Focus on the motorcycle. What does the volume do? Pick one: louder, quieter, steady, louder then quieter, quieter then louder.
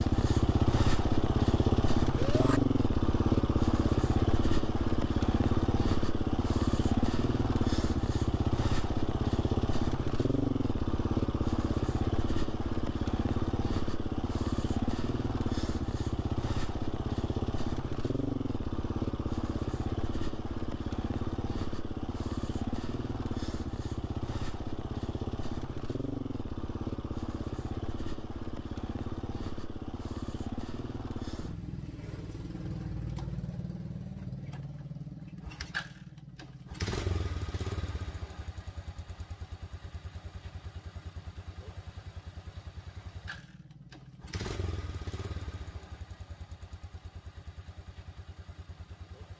quieter.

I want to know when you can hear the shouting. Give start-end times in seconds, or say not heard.
2.1-2.6.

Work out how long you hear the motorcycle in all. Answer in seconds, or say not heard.
49 s.